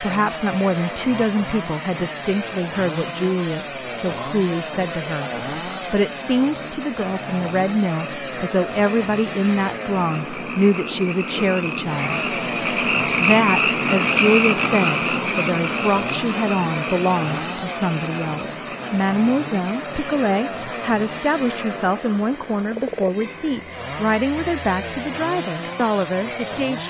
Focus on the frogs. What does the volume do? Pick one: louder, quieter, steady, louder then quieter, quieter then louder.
louder then quieter.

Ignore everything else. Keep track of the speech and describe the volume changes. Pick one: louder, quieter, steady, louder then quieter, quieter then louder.
steady.